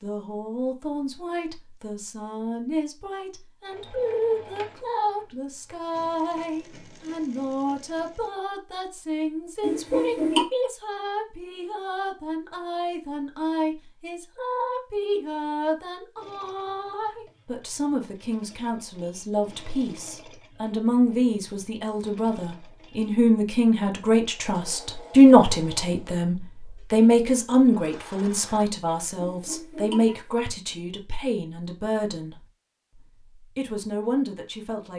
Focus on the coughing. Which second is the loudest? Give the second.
10 s.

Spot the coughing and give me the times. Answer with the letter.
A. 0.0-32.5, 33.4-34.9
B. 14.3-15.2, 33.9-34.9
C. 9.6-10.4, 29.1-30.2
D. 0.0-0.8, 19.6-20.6
C.